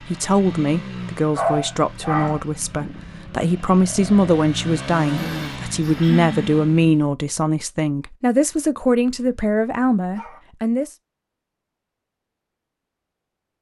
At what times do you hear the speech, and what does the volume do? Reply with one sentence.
You can hear the speech from 0.0 to 10.9 s, at a steady volume.